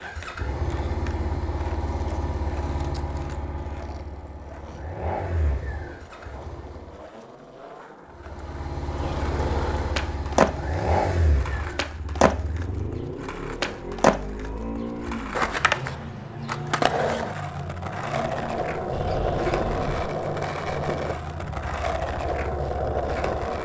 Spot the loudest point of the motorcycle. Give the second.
11 s.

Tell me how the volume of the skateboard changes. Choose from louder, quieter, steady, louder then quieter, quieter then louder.
louder.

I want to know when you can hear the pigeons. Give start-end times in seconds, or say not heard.
18.9-20.1.